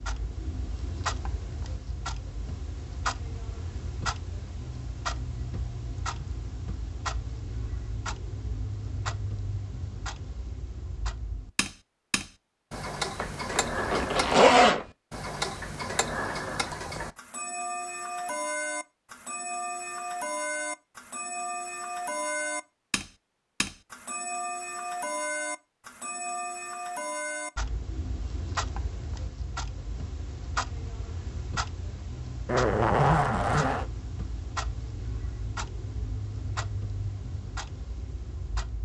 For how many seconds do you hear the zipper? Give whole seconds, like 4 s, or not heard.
3 s.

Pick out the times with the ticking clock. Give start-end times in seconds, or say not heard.
0.0-38.8.